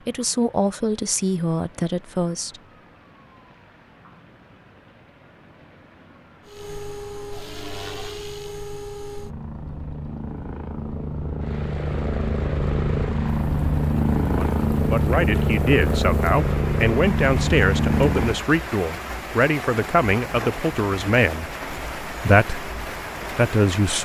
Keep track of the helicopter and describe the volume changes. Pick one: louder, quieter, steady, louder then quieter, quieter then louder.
louder.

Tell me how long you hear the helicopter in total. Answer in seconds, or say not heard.
12 s.